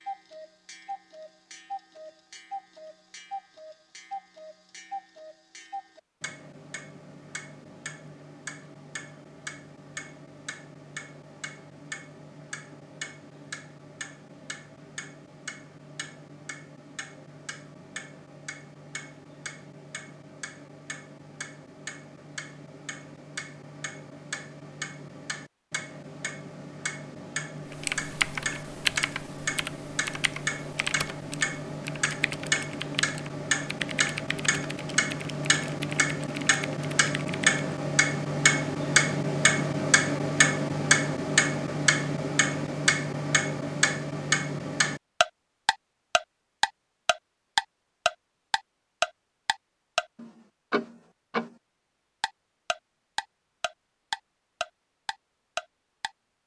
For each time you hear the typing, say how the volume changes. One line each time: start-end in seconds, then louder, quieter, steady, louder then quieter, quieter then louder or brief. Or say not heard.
27.7-37.5 quieter.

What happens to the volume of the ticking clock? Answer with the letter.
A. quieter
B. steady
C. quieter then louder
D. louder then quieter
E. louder
E.